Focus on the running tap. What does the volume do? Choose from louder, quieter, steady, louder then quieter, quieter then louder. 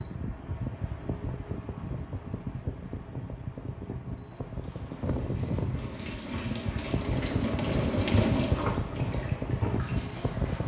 louder then quieter.